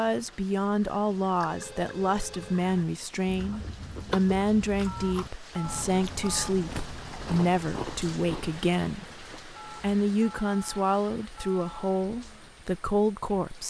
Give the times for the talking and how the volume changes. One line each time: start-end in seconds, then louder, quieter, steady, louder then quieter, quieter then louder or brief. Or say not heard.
0.0-13.6 steady.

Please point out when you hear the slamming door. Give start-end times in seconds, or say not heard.
not heard.